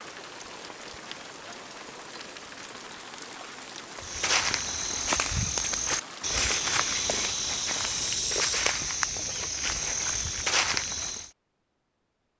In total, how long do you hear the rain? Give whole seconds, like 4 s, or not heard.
8 s.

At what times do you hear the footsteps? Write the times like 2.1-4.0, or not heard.
4.0-11.3.